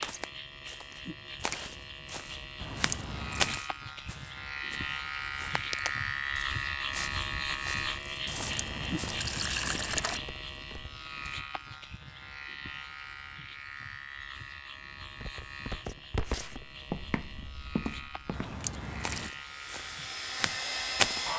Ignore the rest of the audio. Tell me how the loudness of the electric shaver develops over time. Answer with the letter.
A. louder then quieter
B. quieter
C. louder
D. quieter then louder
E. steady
A.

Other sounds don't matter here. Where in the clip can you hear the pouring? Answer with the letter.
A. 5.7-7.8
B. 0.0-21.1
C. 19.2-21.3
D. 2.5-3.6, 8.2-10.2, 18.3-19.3
D.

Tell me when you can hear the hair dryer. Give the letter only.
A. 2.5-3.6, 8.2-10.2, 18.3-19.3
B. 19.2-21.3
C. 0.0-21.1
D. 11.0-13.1
B.